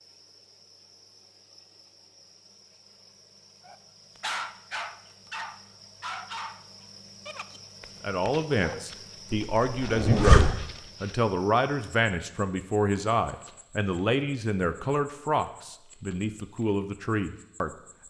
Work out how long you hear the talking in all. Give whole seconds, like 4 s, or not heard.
10 s.